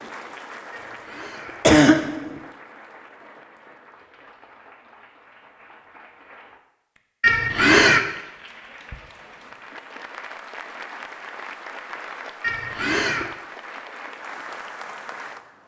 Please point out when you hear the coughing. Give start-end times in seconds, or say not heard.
0.8-2.4, 7.2-8.0, 12.4-13.3.